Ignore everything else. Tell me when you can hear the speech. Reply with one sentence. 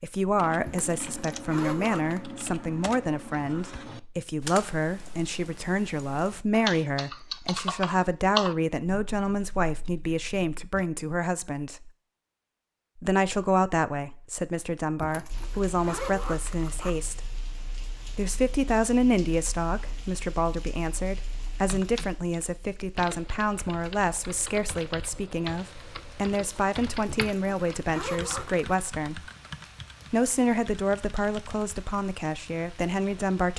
The speech can be heard from 0.0 to 11.9 s, from 12.9 to 17.3 s, from 18.1 to 29.2 s and from 30.1 to 33.5 s.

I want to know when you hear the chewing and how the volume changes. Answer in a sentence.
The chewing can't be heard in this clip.